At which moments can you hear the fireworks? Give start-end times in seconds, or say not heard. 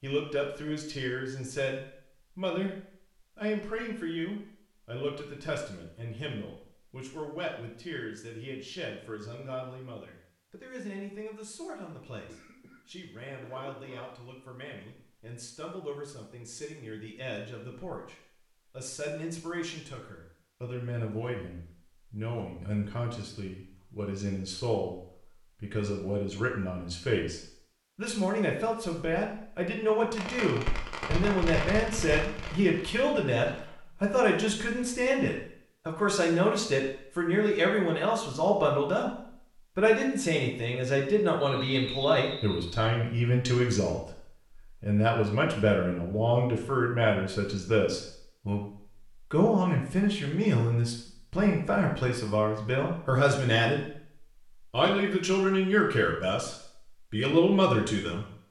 30.1-33.6.